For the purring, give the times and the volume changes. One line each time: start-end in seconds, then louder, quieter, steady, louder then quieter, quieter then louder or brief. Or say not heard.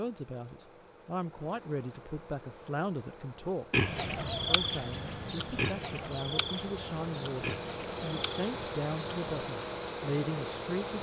not heard.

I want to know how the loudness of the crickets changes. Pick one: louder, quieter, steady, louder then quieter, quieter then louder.
quieter.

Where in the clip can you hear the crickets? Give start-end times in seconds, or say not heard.
2.4-10.9.